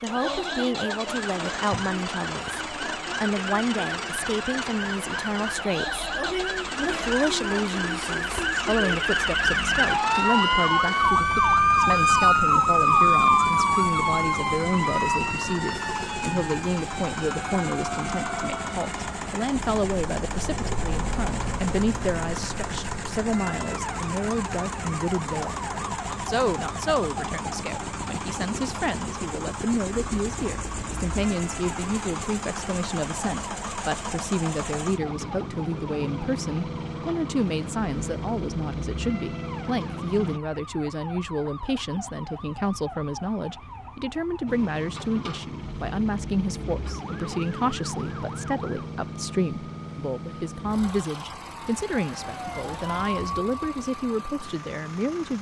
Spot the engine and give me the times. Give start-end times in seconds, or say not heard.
0.0-40.4, 44.5-55.3.